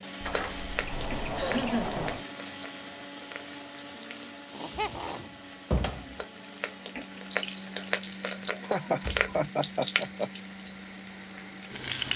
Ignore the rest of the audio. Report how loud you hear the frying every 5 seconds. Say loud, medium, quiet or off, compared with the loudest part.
medium, loud, loud.